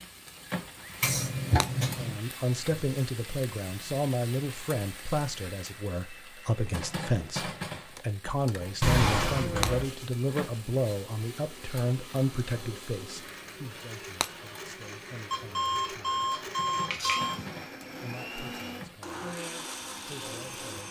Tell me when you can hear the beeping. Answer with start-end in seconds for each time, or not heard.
1.0-2.2, 8.8-9.8, 15.3-17.4.